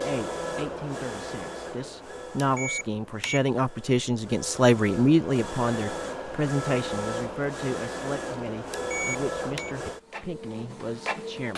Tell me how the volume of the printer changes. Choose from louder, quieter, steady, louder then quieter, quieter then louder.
quieter then louder.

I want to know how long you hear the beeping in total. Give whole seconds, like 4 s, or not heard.
2 s.